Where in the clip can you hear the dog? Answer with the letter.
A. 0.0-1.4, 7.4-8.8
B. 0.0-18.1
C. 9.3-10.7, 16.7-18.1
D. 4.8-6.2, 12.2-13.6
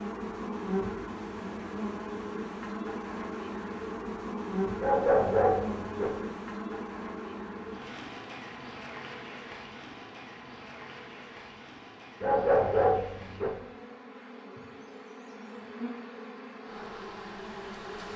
D.